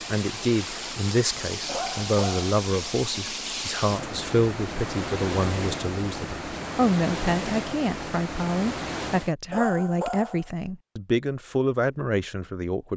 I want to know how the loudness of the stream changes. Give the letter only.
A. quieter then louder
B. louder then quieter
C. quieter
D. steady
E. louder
D.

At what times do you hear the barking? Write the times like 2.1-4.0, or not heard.
1.6-2.5, 9.5-10.5.